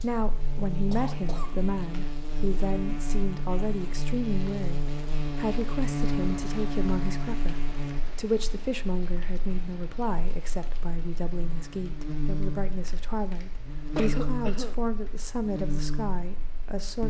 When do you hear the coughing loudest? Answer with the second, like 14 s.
14 s.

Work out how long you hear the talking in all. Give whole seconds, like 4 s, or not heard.
17 s.